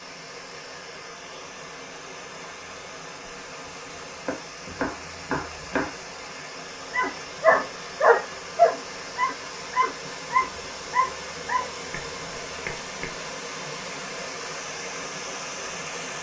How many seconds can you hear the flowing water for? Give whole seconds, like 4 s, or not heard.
16 s.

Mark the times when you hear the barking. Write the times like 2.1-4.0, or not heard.
6.9-11.7.